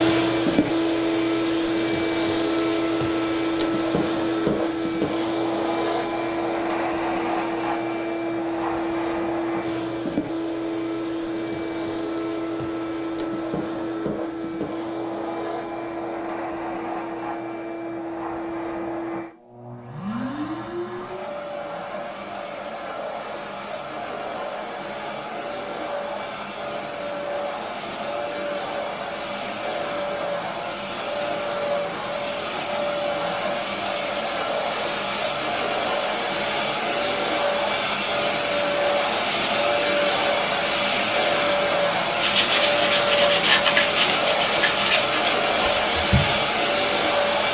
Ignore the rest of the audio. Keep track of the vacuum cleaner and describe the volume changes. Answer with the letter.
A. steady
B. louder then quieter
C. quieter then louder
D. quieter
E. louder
C.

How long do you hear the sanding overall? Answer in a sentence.
You can hear the sanding for 5 seconds altogether.